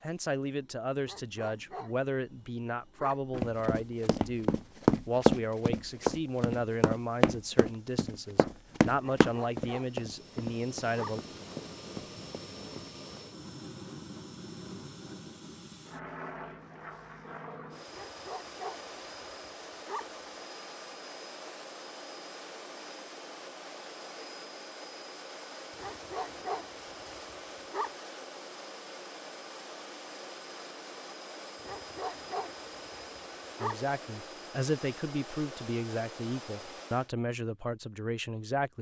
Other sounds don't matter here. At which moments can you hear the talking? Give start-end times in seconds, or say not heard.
0.0-11.2, 33.6-38.7.